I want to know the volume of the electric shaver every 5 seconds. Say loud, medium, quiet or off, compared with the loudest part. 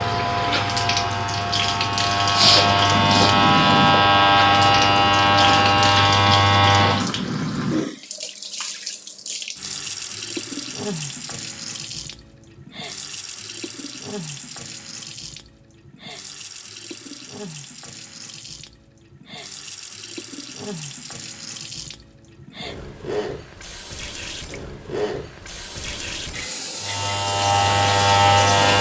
loud, loud, off, off, off, loud.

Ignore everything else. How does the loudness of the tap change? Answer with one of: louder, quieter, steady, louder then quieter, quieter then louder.
quieter then louder.